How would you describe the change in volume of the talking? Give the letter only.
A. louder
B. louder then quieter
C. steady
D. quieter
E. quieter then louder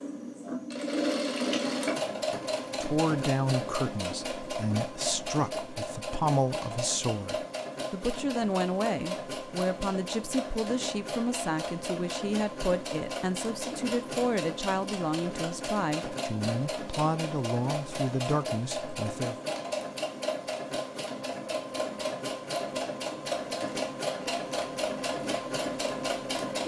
C.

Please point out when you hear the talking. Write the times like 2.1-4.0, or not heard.
2.8-19.4.